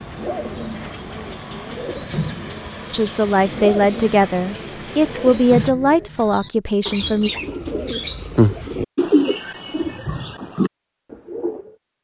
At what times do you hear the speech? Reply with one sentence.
You can hear the speech from 2.9 to 7.3 s.